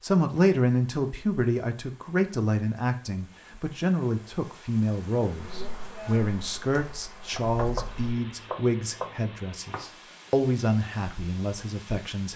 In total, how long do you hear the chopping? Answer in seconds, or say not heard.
2 s.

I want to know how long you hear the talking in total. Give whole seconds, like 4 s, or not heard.
12 s.